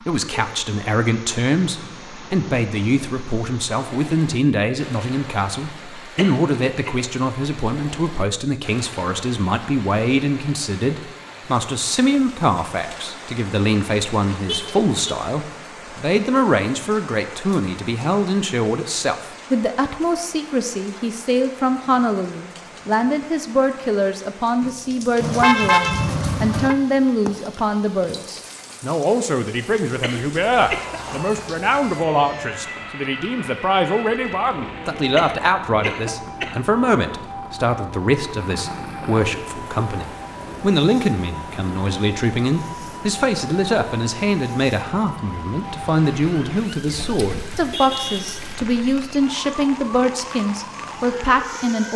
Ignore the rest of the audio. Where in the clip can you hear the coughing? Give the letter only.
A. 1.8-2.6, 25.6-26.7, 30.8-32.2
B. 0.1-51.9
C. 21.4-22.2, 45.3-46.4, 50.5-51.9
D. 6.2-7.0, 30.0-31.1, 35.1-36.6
D.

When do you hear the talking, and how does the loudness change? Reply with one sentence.
The talking can be heard from 0.1 to 51.9 s, at a steady volume.